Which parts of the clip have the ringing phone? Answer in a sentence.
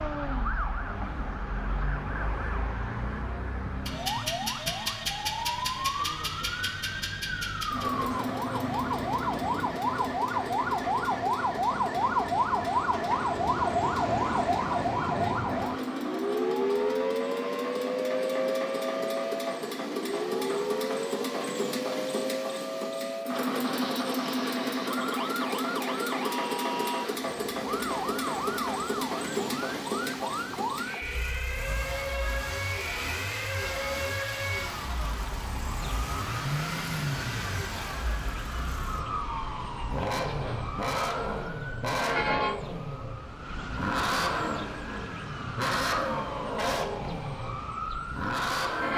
You can't hear the ringing phone here.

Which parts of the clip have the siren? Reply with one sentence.
You can hear the siren from 0.0 to 48.9 s.